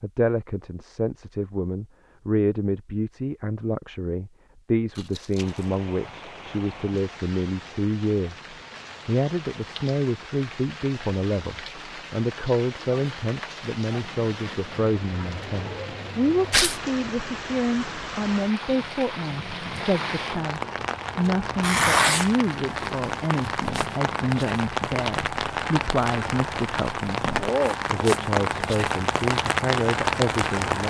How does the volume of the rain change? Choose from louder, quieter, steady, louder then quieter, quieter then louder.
louder.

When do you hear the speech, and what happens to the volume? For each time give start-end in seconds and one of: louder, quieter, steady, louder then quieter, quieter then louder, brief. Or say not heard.
0.0-30.8 steady.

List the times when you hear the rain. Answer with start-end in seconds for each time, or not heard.
5.3-30.8.